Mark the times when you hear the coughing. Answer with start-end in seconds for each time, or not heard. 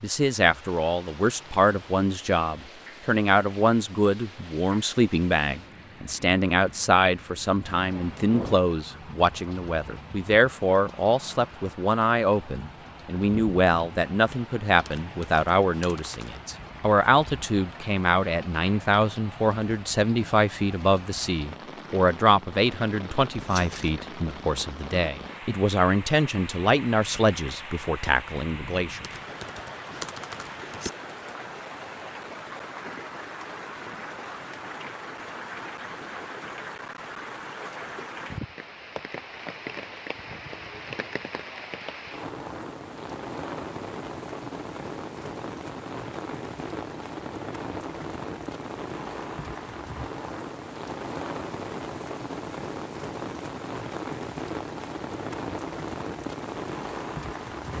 not heard.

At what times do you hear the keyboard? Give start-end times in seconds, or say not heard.
14.8-16.4, 29.0-30.9.